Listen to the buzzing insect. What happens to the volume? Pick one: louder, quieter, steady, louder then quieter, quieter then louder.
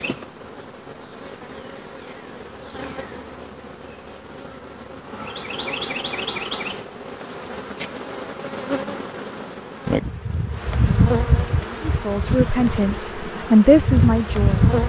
louder.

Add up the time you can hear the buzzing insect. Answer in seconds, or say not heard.
15 s.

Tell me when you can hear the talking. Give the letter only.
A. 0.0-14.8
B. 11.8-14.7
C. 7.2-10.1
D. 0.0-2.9
B.